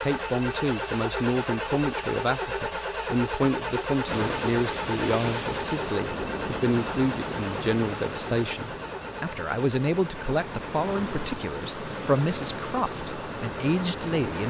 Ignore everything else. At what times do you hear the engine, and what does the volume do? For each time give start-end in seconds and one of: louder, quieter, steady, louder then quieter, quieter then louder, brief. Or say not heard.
0.0-14.4 quieter.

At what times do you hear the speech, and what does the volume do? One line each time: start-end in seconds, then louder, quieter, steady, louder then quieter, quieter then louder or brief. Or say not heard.
0.0-14.4 steady.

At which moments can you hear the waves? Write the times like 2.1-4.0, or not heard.
4.0-14.4.